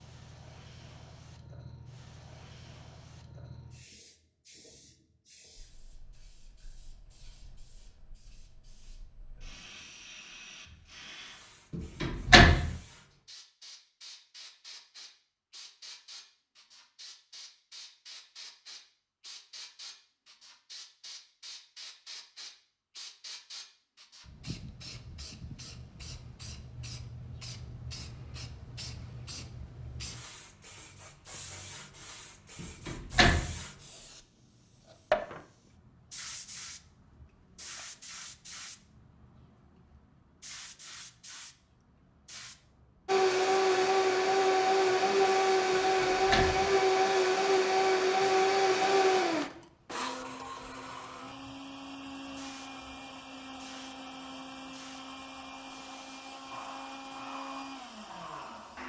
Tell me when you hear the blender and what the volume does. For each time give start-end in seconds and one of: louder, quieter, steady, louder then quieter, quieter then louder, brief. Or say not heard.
43.0-58.8 quieter.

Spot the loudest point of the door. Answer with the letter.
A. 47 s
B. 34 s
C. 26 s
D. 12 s
D.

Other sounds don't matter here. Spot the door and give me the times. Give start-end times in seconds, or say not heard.
11.7-12.7, 32.6-33.5, 45.7-46.7.